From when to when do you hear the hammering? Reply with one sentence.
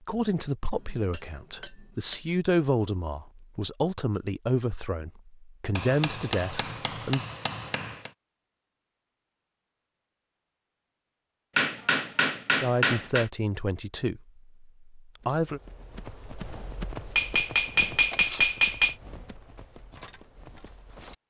You can hear the hammering from 0.7 to 2.2 s, from 5.8 to 8.1 s, from 11.6 to 13.2 s and from 17.1 to 18.9 s.